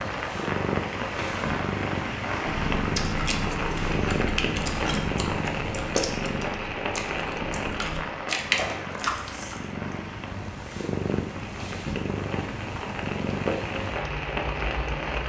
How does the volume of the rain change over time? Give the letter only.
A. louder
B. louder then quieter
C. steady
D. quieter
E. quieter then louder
E.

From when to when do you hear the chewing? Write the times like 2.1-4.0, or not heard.
2.5-9.9.